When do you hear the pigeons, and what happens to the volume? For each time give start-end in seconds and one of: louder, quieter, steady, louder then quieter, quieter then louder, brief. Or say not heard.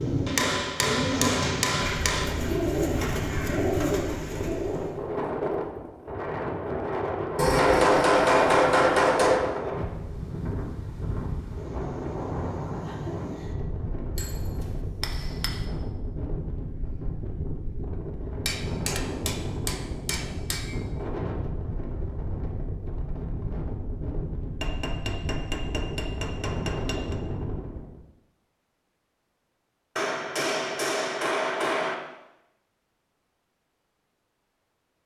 0.0-5.0 steady.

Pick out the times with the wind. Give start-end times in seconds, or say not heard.
0.0-28.0.